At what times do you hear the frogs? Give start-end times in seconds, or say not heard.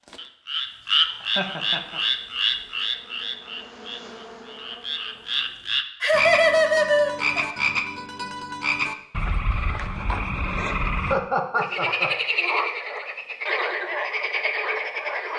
0.0-15.3.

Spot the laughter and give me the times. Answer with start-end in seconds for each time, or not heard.
1.2-2.0, 6.0-7.5, 11.0-12.1.